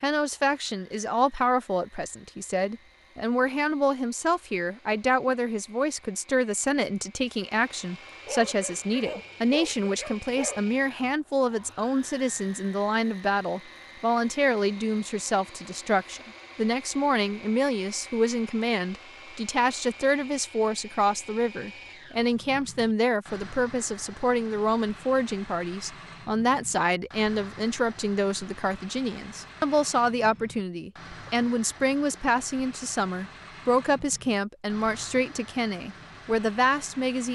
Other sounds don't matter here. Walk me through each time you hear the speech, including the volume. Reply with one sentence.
The speech can be heard from 0.0 to 37.3 s, at a steady volume.